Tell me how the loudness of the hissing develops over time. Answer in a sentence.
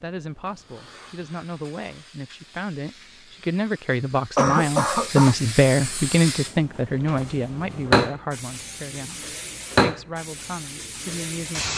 The volume of the hissing goes up.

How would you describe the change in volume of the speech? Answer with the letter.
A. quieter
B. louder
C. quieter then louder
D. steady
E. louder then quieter
E.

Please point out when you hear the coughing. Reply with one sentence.
The coughing can be heard from 4.3 to 5.3 s.